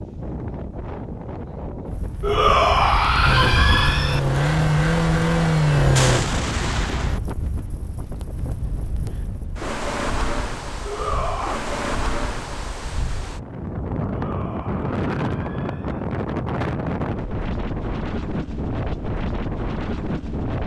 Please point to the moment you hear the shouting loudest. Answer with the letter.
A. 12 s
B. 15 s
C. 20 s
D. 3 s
D.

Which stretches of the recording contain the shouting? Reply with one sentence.
The shouting can be heard from 2.2 to 4.2 s, from 10.8 to 11.6 s and from 14.1 to 16.1 s.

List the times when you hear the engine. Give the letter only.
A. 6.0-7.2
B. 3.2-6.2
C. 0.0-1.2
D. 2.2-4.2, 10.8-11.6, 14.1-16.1
B.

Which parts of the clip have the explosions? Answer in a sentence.
The explosions can be heard from 6.0 to 7.2 s.